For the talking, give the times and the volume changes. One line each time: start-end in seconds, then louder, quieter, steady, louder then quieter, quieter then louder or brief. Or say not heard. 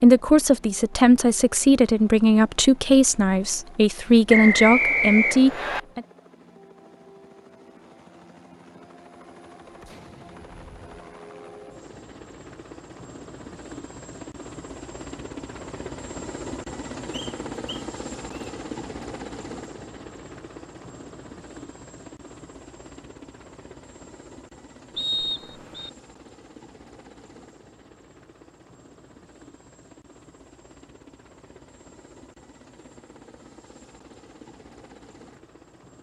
0.0-6.0 steady.